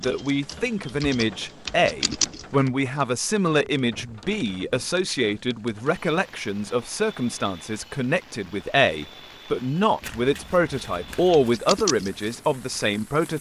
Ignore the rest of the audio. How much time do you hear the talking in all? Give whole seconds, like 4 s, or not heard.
13 s.